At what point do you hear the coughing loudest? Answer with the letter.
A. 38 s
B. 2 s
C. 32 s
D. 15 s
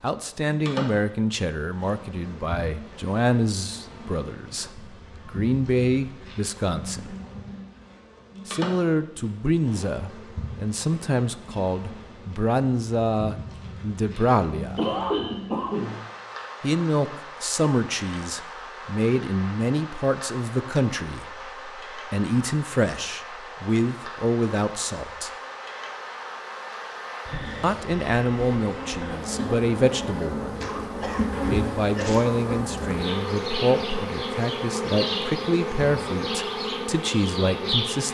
D.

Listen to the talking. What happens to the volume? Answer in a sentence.
The volume of the talking stays about the same.